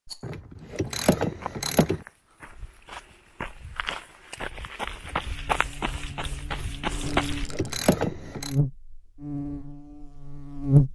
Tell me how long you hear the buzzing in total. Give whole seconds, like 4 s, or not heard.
6 s.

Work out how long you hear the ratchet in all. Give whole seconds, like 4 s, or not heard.
3 s.